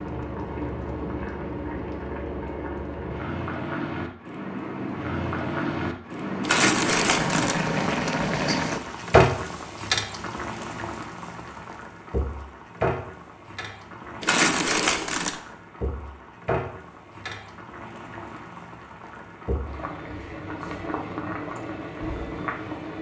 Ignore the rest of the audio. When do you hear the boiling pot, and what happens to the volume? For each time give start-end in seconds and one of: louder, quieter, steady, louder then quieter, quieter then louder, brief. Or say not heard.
0.0-22.9 louder then quieter.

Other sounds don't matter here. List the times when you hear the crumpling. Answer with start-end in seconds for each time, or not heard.
6.4-7.6, 14.2-15.4.